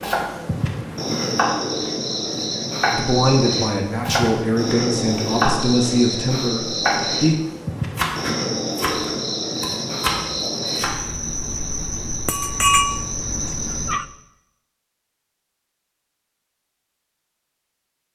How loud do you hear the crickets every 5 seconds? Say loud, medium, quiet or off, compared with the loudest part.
loud, loud, loud, off.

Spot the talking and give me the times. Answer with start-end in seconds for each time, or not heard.
2.9-7.3.